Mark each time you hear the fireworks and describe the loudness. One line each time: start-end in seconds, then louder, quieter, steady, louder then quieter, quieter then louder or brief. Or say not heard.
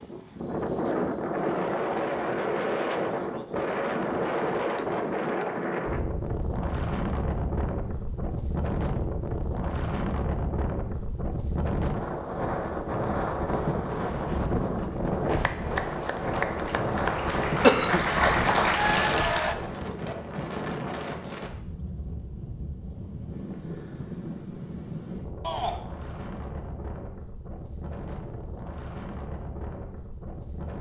not heard.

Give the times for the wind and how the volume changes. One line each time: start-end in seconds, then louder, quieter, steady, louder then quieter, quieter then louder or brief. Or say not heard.
0.0-30.7 quieter.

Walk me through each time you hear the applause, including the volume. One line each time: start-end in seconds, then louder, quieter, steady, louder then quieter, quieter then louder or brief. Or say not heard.
15.2-19.6 louder.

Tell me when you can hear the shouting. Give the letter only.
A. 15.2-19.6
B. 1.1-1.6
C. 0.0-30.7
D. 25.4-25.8
D.